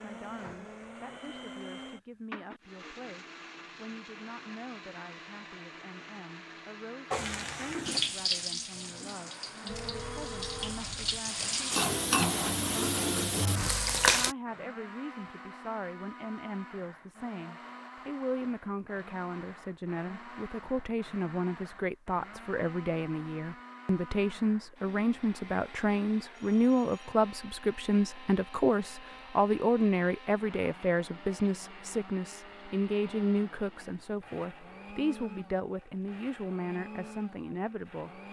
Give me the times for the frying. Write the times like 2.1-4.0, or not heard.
7.1-14.3.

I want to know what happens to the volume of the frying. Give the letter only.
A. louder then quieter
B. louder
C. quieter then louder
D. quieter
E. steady
C.